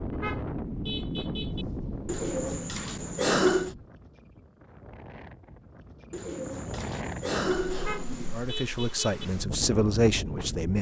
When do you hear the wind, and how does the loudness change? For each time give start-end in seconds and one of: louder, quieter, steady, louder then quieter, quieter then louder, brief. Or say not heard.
0.0-10.7 quieter then louder.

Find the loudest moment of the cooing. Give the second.
3 s.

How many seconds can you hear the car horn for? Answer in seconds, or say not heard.
3 s.